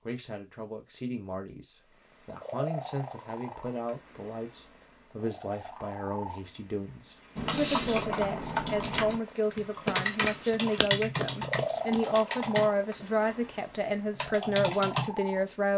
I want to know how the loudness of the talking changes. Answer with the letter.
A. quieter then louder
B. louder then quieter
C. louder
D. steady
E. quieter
C.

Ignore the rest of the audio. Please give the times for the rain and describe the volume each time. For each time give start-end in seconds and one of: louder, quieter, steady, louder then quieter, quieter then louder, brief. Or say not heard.
not heard.